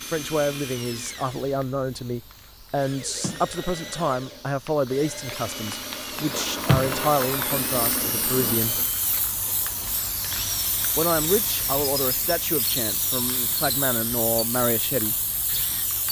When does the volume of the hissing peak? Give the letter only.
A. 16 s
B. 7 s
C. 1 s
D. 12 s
B.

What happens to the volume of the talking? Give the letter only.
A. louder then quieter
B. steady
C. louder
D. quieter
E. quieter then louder
B.